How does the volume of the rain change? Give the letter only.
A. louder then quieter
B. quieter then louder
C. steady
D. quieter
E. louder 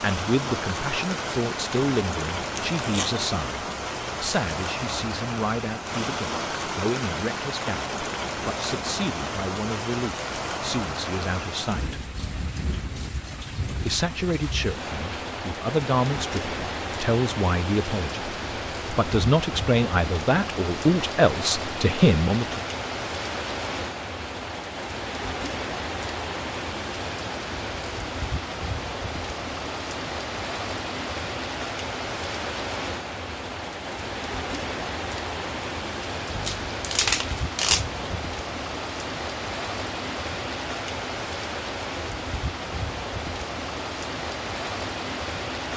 C.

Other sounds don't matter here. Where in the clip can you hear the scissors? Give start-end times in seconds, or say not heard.
not heard.